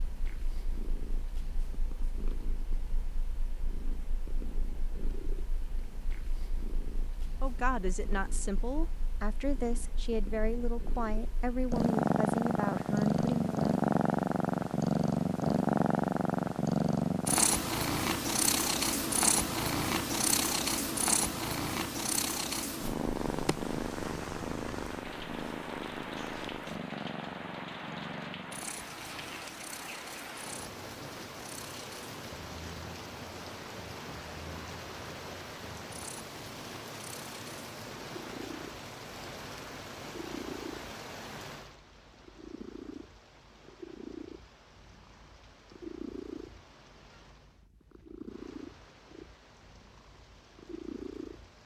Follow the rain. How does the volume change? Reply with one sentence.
The volume of the rain goes down.